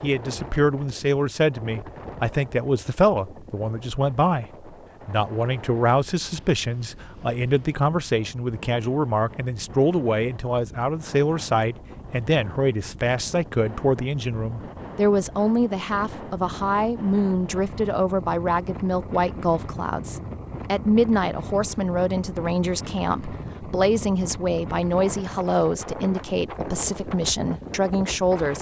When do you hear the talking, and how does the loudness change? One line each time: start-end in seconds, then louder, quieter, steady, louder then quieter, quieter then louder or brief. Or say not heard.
0.0-28.5 steady.